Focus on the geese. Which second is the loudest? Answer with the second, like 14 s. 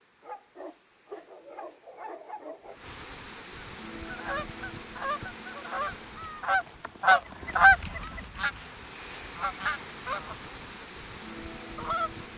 8 s.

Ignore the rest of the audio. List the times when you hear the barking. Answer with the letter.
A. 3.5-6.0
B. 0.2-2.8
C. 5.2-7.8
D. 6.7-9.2
B.